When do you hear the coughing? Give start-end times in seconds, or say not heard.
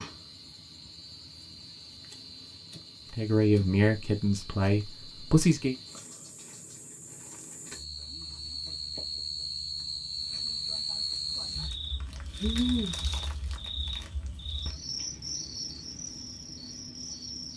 not heard.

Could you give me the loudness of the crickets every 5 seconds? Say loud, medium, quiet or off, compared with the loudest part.
quiet, medium, loud, medium.